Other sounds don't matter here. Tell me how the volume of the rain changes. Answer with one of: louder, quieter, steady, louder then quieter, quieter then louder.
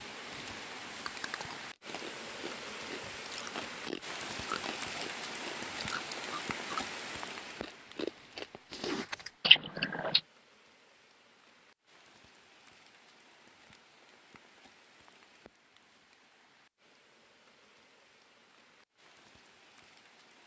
quieter.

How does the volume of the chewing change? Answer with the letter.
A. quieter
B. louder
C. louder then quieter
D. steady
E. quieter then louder
B.